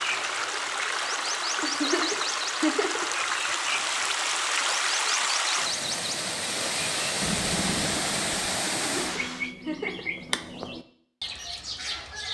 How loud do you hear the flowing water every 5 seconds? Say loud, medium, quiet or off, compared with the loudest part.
loud, loud, off.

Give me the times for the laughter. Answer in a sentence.
The laughter can be heard from 1.6 to 3.0 s and from 8.8 to 10.1 s.